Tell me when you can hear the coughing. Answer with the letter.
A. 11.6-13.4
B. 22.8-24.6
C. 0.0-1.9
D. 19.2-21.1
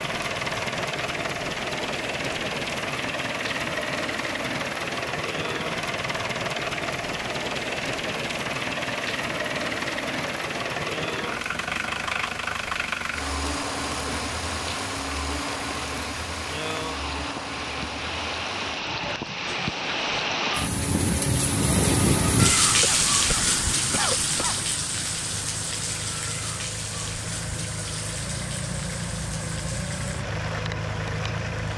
B.